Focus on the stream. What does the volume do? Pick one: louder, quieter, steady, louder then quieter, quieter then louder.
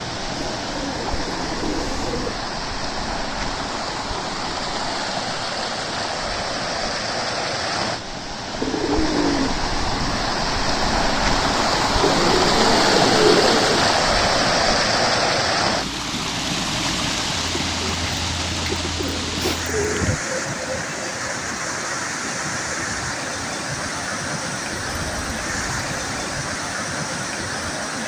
louder then quieter.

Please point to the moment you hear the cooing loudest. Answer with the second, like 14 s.
13 s.